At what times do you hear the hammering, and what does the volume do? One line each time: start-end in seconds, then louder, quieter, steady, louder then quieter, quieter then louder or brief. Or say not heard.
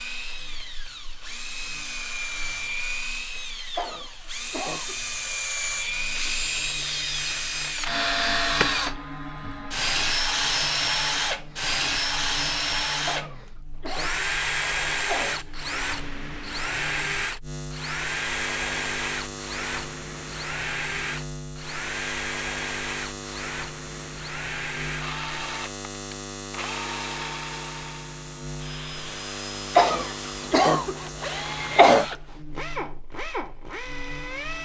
not heard.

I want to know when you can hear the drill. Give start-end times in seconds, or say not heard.
0.0-34.6.